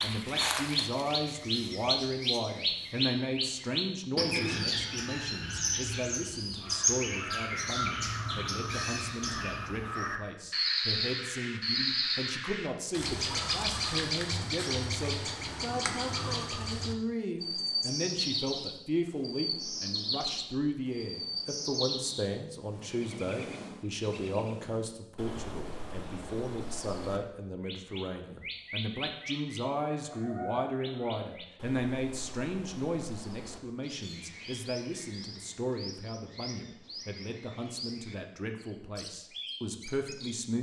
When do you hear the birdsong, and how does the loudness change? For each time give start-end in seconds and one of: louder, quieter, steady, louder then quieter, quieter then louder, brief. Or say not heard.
0.0-40.4 quieter.